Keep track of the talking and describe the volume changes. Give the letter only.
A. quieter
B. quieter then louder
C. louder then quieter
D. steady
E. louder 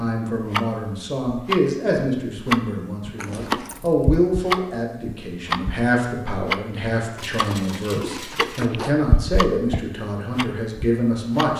D.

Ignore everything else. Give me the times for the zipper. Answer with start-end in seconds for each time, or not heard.
3.1-3.8, 7.2-8.9.